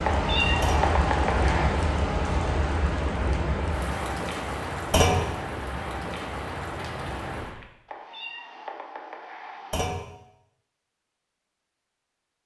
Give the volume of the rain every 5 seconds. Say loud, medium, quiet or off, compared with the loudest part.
loud, medium, off.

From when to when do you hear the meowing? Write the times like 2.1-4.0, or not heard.
0.0-1.8, 7.8-9.8.